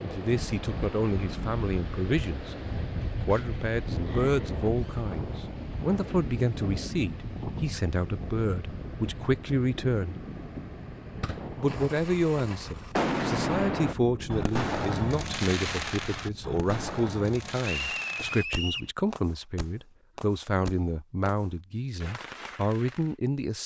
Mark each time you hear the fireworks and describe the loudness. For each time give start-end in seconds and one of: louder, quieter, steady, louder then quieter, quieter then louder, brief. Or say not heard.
11.2-23.1 quieter.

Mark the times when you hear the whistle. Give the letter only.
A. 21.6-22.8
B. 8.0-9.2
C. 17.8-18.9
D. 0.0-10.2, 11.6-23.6
C.